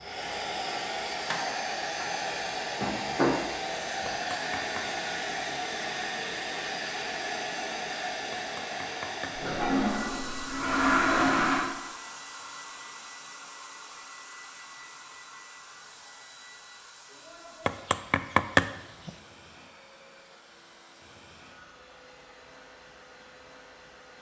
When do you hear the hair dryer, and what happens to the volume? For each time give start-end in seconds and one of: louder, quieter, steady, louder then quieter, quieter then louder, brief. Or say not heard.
0.0-24.1 quieter.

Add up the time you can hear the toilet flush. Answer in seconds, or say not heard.
2 s.